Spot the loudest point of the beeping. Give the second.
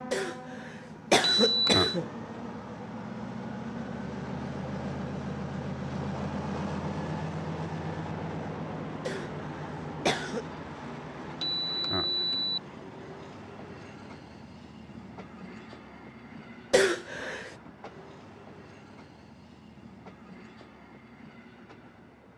2 s.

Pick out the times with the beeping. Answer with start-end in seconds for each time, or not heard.
1.4-2.0, 11.4-12.6.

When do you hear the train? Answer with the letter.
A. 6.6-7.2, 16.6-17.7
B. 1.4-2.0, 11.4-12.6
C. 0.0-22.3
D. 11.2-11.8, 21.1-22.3
C.